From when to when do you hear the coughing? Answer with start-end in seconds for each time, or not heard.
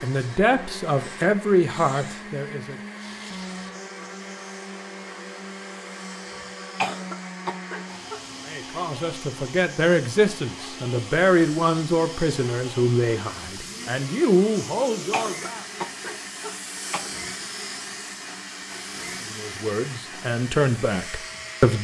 6.8-8.2, 15.1-17.1.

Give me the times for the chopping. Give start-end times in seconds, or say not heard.
not heard.